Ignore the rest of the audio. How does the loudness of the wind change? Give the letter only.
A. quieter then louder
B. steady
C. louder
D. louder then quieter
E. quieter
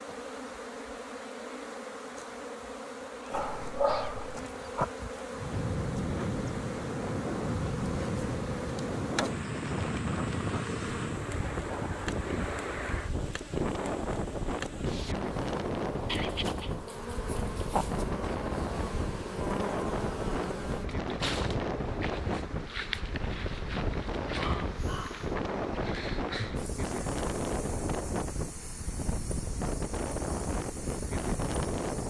B.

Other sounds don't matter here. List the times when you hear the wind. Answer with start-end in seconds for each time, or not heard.
5.3-32.0.